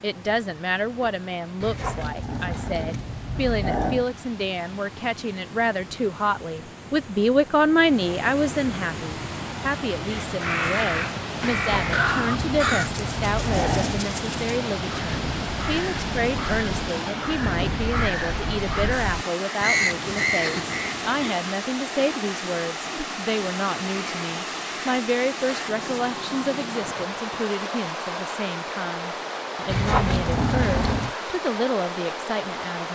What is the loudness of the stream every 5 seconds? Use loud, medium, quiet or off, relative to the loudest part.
quiet, medium, loud, loud, loud, loud, loud.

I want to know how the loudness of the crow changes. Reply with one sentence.
The loudness of the crow goes down, then up.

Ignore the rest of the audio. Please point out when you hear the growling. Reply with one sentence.
The growling can be heard from 1.6 to 4.1 s, from 11.4 to 14.1 s and from 29.6 to 31.1 s.